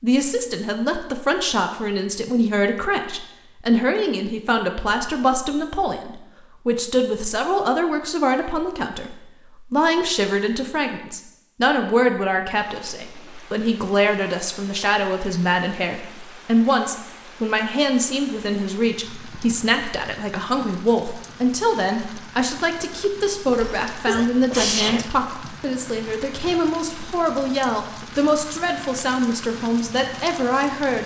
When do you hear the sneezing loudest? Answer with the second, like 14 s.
25 s.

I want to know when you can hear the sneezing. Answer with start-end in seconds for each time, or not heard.
23.5-25.1.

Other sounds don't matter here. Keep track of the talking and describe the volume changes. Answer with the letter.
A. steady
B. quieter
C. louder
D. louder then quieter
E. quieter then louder
A.